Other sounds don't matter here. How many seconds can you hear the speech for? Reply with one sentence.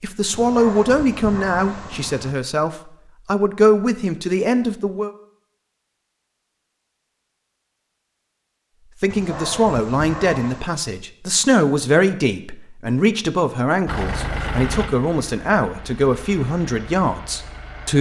The speech can be heard for 14 seconds in total.